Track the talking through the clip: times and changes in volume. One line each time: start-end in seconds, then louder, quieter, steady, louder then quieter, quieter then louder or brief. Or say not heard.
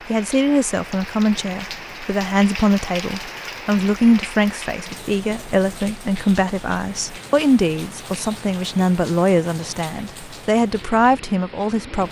0.1-12.0 steady.